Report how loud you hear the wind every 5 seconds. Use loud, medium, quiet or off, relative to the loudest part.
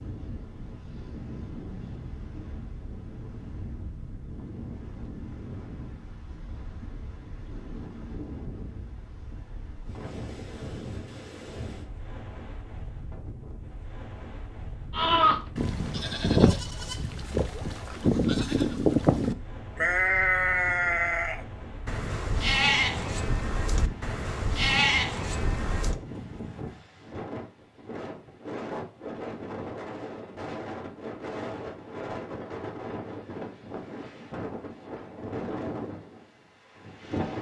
medium, medium, medium, medium, medium, loud, loud, loud.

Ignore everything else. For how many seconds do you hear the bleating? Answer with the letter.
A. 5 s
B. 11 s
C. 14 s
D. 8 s
B.